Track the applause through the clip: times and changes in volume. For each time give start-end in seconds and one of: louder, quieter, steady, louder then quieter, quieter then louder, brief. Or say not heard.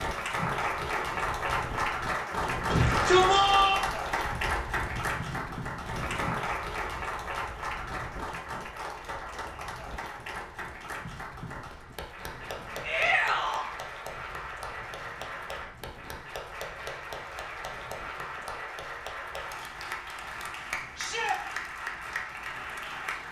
0.0-23.2 quieter.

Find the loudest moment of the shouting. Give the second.
3 s.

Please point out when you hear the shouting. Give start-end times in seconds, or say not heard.
2.7-3.8, 12.8-13.7, 20.9-21.4.